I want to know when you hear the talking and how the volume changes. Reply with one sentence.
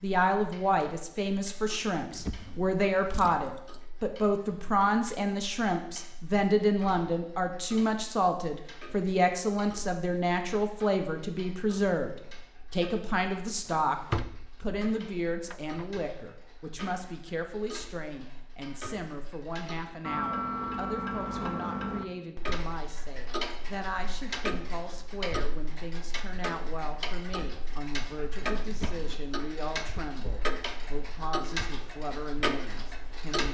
The talking can be heard from 0.0 to 13.9 s, at a steady volume; and from 14.6 to 33.4 s, at a steady volume.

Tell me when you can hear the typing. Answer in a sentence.
The typing can't be heard in this clip.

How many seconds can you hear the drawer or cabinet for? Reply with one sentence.
You can hear the drawer or cabinet for 3 seconds altogether.